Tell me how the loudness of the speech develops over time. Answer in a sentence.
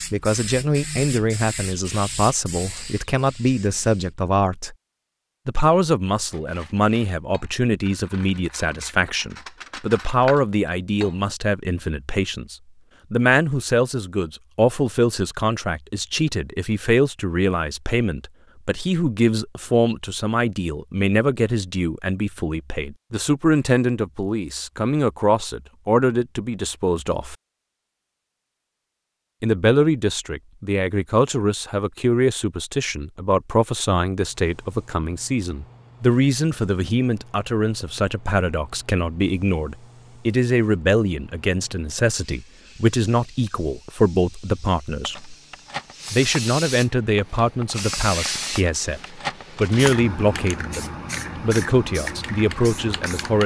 The loudness of the speech stays about the same.